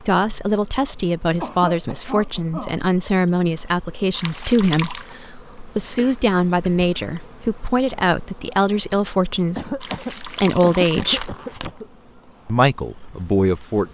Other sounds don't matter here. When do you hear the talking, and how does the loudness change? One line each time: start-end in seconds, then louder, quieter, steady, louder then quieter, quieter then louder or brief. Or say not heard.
0.0-11.3 steady
12.4-13.8 brief.